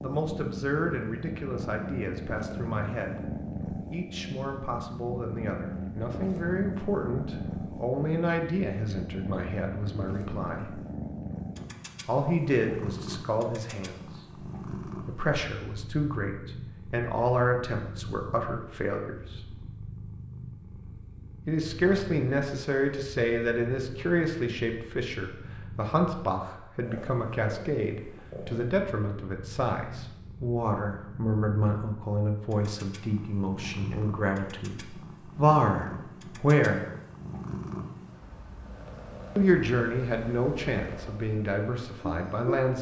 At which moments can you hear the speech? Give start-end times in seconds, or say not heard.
0.0-3.2, 3.9-10.8, 12.1-14.2, 15.1-19.6, 21.4-36.9, 39.4-42.7.